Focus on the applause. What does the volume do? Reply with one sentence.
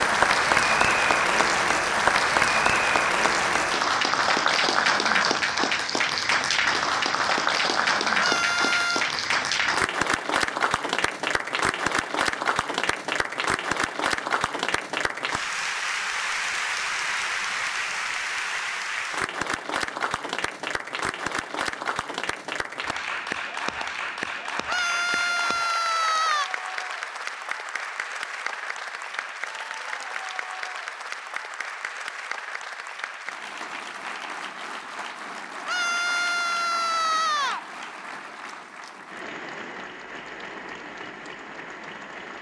The volume of the applause goes down.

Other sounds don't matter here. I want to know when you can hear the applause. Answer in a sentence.
The applause can be heard from 0.0 to 42.3 s.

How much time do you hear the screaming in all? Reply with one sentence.
The screaming can be heard for 5 seconds in total.